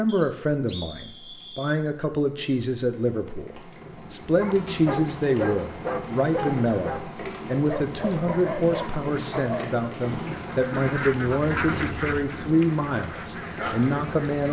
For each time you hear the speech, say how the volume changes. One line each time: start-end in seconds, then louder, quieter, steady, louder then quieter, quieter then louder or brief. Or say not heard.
0.0-14.4 steady.